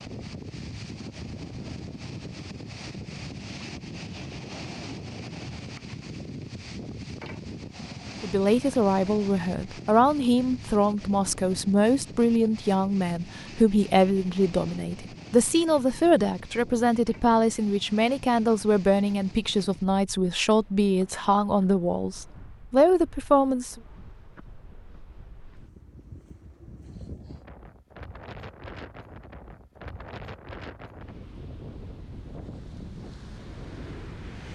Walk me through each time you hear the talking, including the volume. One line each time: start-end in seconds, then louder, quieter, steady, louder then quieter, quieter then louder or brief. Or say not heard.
8.2-23.8 steady.